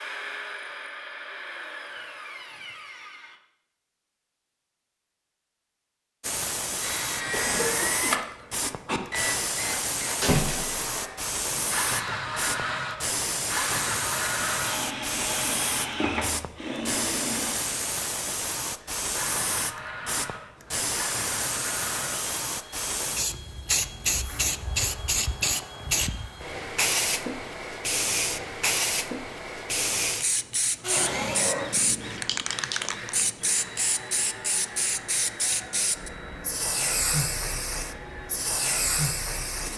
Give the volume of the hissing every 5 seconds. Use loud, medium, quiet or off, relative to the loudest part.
off, loud, loud, loud, loud, loud, loud, loud.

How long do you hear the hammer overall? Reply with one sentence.
You can't hear the hammer here.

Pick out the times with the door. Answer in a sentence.
The door can be heard from 10.2 to 11.0 s.